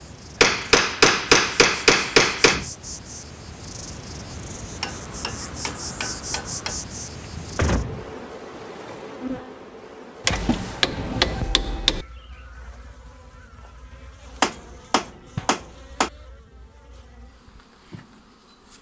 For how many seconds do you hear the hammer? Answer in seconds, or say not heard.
8 s.